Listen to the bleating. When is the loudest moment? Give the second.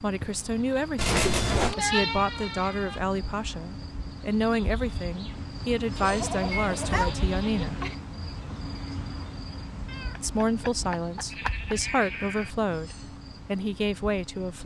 2 s.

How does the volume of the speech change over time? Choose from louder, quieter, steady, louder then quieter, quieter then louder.
steady.